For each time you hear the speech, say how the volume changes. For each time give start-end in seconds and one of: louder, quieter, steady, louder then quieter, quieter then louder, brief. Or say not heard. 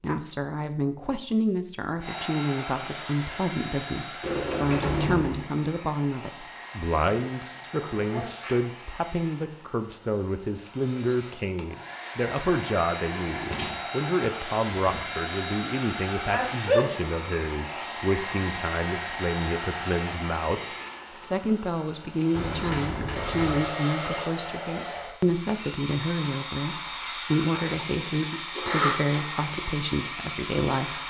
0.0-31.0 steady.